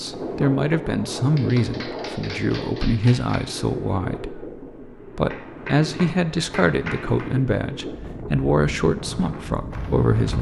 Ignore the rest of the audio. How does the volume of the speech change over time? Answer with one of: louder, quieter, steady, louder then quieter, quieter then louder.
steady.